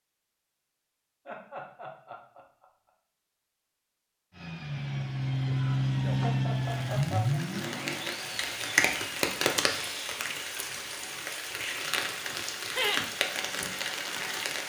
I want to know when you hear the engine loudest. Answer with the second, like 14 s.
6 s.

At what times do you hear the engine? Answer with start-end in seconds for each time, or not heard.
4.3-9.3.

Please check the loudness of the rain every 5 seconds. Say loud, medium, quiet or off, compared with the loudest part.
off, loud, loud.